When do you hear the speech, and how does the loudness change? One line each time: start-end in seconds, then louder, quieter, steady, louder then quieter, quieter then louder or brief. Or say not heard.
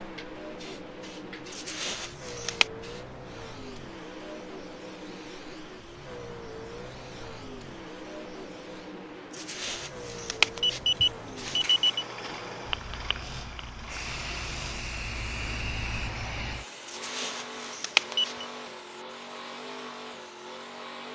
not heard.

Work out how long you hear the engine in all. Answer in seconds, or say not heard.
21 s.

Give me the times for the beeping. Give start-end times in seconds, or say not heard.
1.5-2.6, 9.3-12.1, 16.9-18.4.